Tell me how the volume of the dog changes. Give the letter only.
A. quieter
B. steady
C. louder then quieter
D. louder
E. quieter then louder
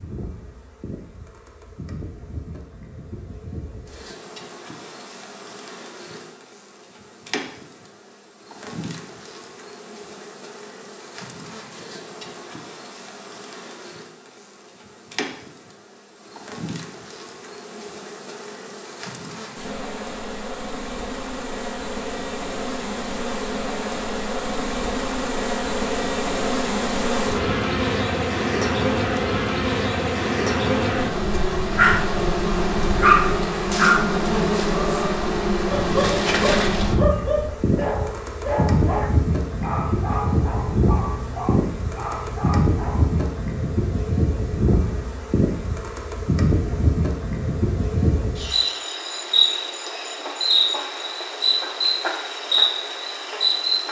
A.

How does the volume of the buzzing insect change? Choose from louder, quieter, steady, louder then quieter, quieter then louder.
louder.